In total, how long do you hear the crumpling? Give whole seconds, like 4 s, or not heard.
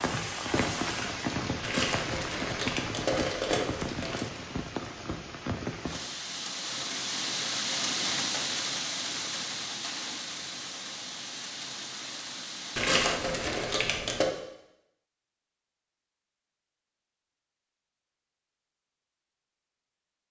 4 s.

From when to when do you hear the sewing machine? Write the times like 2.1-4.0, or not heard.
not heard.